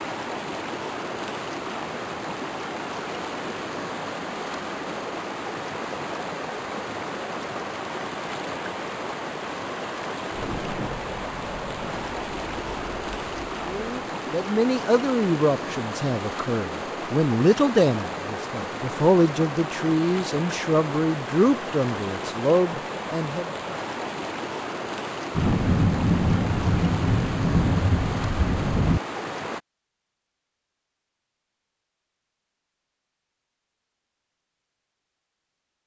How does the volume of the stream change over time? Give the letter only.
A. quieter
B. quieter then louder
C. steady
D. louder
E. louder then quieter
C.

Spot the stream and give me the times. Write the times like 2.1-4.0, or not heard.
0.0-29.6.